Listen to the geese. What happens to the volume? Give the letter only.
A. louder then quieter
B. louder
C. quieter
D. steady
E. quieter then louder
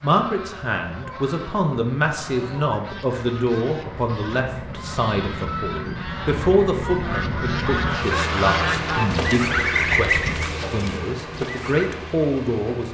B.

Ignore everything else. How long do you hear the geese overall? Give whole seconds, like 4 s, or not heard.
12 s.